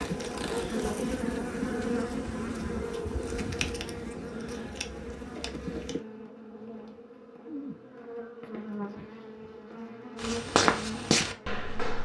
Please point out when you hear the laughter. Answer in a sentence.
You can't hear the laughter here.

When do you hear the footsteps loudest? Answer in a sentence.
The volume of the footsteps peaks at 11 seconds.